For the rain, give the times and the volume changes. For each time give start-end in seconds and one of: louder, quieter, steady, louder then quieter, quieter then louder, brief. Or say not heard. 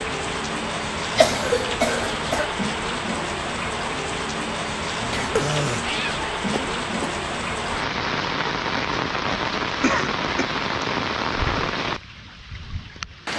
0.0-13.3 steady.